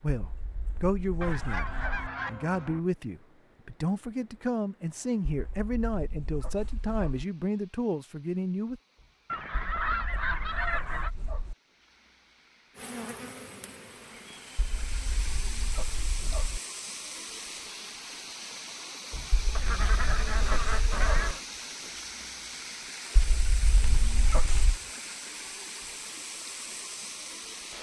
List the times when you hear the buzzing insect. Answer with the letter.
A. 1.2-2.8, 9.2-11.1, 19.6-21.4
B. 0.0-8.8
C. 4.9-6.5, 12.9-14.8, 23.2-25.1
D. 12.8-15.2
D.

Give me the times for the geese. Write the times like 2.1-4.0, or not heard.
1.2-2.8, 9.2-11.1, 19.6-21.4.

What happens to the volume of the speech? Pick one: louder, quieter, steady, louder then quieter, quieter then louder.
steady.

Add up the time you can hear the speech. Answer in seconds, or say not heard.
9 s.